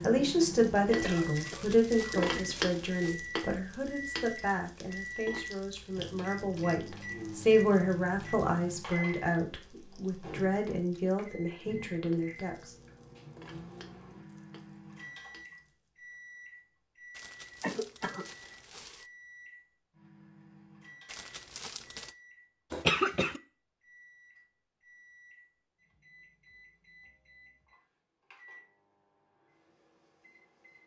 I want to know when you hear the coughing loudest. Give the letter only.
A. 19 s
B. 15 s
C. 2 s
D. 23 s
D.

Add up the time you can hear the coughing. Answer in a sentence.
You can hear the coughing for 3 seconds altogether.